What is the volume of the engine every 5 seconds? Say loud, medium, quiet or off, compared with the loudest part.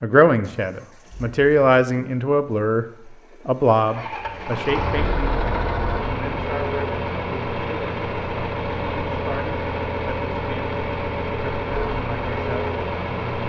medium, loud, loud.